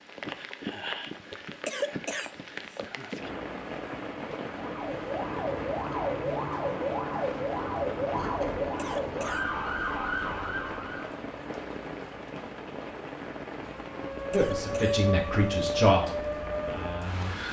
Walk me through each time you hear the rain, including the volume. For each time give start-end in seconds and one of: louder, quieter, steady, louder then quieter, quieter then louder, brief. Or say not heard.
0.0-17.4 steady.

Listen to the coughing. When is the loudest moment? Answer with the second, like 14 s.
2 s.